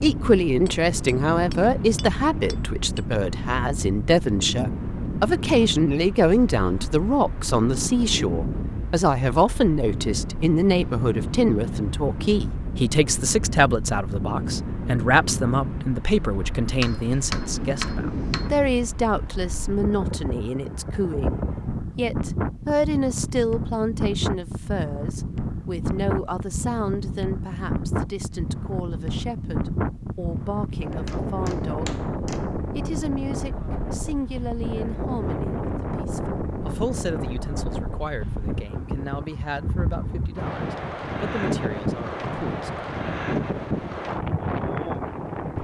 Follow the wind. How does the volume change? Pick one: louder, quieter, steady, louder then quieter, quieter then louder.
steady.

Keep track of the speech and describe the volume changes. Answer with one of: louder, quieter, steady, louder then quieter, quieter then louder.
quieter.